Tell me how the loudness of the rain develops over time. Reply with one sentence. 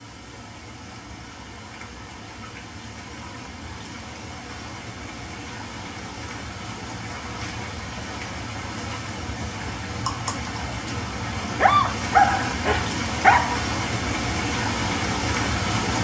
The volume of the rain goes up.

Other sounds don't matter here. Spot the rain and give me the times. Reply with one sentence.
The rain can be heard from 0.0 to 16.0 s.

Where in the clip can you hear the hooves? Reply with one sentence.
The hooves can't be heard in this clip.